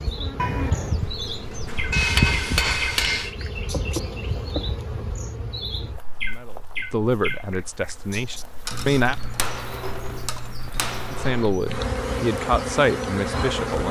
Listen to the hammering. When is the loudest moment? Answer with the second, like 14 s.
2 s.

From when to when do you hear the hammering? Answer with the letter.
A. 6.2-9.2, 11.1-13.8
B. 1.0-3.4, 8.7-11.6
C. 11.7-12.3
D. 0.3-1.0
B.